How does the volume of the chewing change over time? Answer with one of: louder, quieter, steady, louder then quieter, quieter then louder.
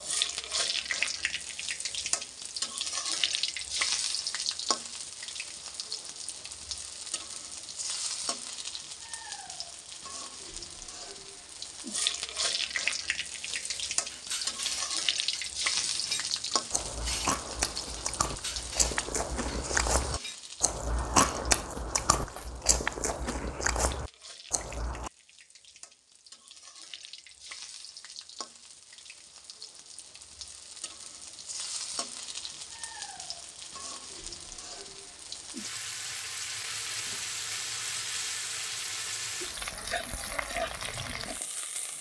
louder then quieter.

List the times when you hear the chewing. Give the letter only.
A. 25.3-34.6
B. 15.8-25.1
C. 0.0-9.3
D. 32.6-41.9
B.